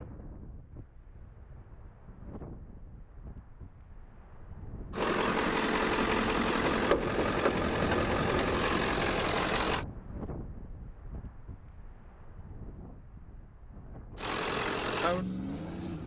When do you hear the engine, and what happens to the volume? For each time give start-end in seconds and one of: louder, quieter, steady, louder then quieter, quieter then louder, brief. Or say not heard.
4.9-9.8 steady
14.2-16.0 brief.